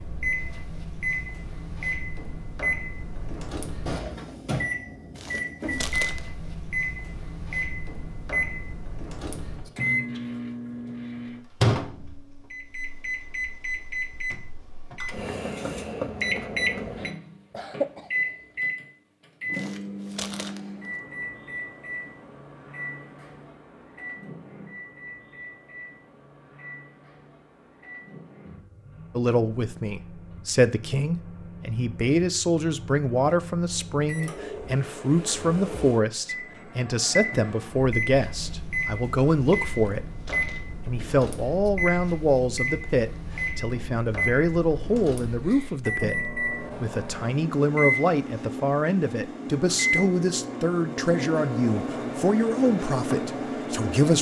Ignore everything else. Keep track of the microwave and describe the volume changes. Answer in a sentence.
The loudness of the microwave goes down, then up.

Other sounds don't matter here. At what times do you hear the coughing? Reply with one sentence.
The coughing can be heard from 17.5 to 18.2 s.